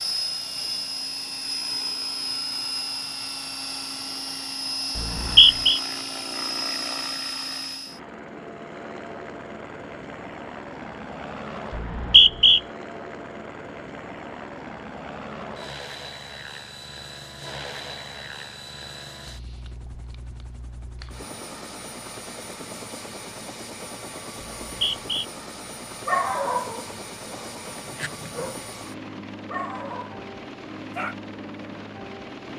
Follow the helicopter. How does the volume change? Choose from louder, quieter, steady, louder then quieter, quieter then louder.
quieter.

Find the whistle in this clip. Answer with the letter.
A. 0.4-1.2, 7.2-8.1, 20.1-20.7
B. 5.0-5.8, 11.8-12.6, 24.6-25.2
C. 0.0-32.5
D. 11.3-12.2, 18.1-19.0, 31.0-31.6
B.